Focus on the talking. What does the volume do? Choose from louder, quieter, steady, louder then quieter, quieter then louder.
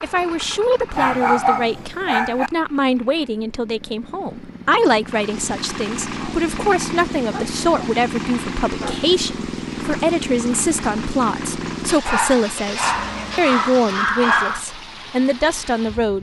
steady.